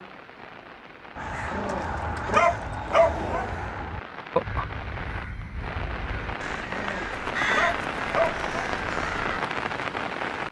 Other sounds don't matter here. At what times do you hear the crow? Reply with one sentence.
You can hear the crow from 1.1 to 9.4 s.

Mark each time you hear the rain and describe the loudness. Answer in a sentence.
The rain can be heard from 0.0 to 10.4 s, getting louder.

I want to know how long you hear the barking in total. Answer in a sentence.
You can hear the barking for 4 seconds altogether.